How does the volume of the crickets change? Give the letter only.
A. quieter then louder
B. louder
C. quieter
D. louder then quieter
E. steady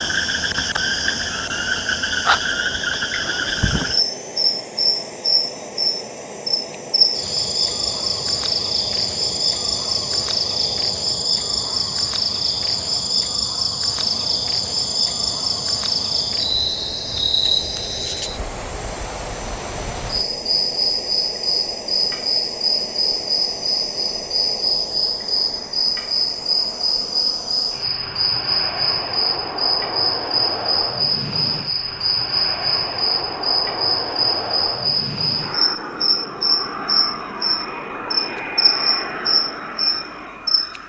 E.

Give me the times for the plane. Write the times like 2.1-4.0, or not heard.
0.0-40.8.